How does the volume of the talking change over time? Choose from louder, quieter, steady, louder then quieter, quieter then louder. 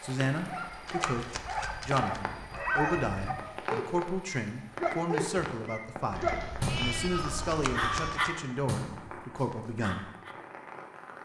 steady.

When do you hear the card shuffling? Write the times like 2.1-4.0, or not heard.
0.8-2.2, 7.5-8.3.